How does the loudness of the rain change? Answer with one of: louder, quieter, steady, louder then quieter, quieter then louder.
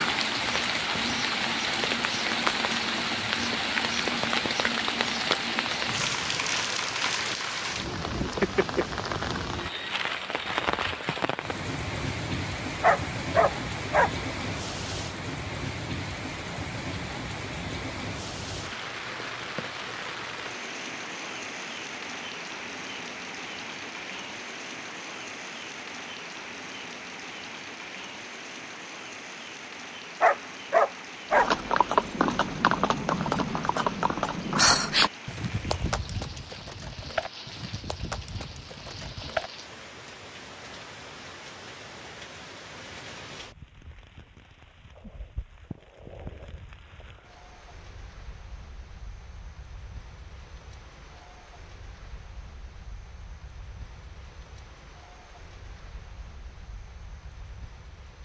quieter.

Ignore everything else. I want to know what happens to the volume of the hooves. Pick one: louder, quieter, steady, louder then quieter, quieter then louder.
quieter.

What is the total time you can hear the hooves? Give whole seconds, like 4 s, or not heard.
8 s.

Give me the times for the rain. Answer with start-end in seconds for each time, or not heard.
0.0-58.2.